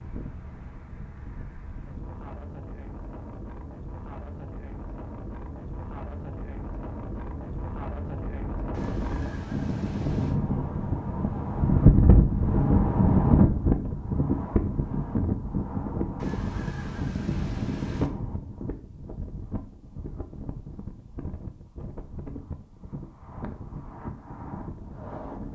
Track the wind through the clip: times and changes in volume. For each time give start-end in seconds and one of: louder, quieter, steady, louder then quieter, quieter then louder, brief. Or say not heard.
0.0-25.5 louder then quieter.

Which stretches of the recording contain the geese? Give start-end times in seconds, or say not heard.
8.7-10.3, 16.2-18.1.